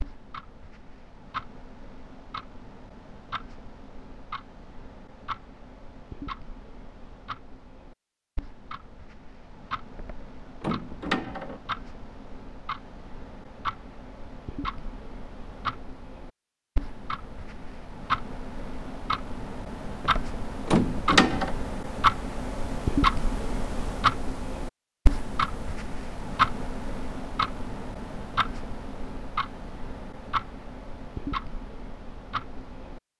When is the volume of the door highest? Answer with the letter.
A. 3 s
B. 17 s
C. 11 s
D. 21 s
D.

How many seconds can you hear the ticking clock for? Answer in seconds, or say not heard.
33 s.